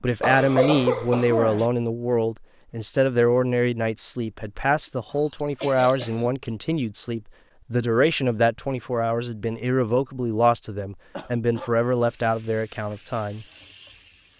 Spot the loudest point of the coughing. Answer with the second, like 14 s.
1 s.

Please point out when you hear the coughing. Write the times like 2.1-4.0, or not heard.
0.2-1.7, 5.1-6.5, 11.2-11.7.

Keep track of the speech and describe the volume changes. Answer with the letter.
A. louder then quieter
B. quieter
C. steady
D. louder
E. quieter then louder
C.